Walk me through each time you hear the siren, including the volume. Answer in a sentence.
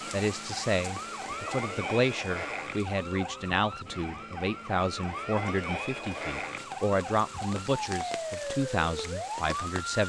You can hear the siren from 0.0 to 9.8 s, at a steady volume.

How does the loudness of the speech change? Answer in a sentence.
The loudness of the speech stays about the same.